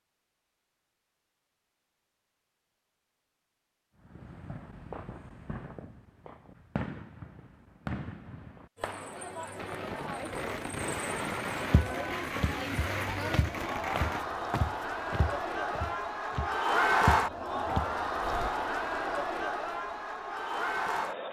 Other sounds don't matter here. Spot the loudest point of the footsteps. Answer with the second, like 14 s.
17 s.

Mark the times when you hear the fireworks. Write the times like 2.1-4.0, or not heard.
4.0-14.3.